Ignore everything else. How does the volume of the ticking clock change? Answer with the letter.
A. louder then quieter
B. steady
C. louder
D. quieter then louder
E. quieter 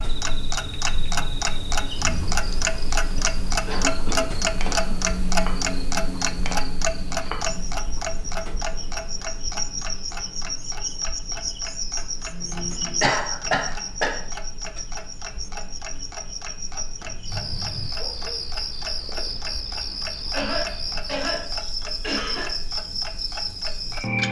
E.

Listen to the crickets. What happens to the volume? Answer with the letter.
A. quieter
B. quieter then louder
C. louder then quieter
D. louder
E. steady
D.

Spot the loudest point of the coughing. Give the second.
13 s.